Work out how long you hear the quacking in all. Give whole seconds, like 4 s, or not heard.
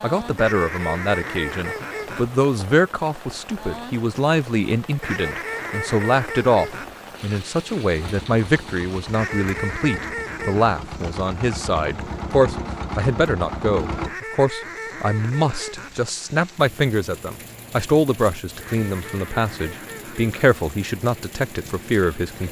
9 s.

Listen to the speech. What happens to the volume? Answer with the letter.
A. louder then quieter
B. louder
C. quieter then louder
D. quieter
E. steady
E.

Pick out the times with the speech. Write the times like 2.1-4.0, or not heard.
0.0-22.4.